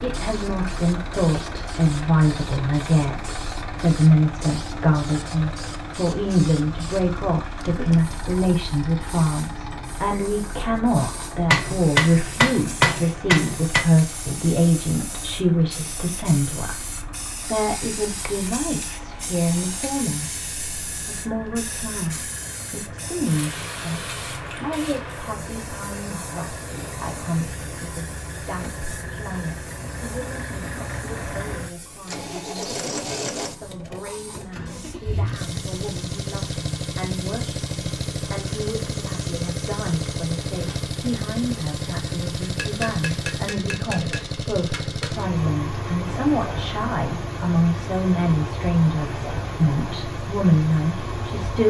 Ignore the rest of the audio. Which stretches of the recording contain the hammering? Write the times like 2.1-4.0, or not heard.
11.5-13.8, 42.5-45.1.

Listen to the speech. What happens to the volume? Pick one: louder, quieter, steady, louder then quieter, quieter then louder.
quieter then louder.